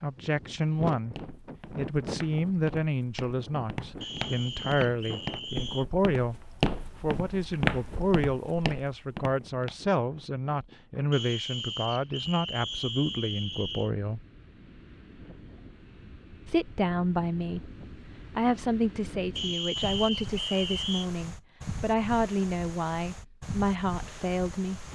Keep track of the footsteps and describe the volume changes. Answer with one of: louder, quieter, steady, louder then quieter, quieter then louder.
louder then quieter.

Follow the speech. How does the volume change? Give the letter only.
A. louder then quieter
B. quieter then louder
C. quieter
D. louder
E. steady
E.